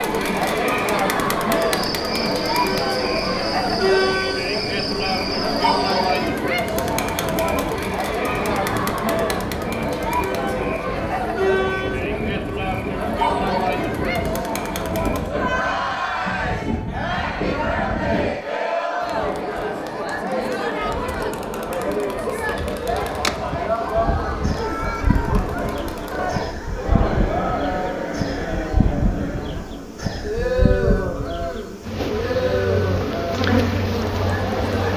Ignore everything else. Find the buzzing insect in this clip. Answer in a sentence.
The buzzing insect can be heard from 1.6 to 6.3 s and from 22.4 to 34.9 s.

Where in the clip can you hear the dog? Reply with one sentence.
The dog can't be heard in this clip.